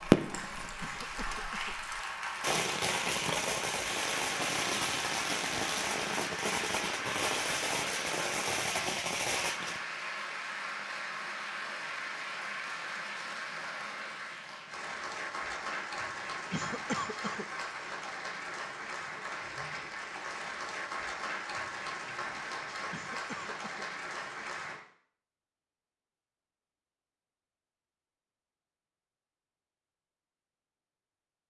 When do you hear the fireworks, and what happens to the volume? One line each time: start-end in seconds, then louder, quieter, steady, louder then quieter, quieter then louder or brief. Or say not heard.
0.0-9.8 louder.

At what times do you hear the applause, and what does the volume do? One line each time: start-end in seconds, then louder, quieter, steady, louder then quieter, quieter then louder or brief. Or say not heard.
0.0-24.8 steady.